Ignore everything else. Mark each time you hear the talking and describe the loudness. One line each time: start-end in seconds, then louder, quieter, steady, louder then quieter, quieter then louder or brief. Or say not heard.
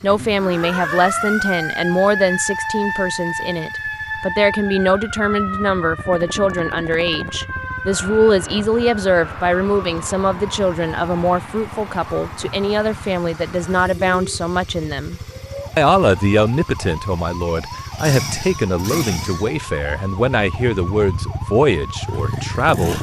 0.0-22.9 steady.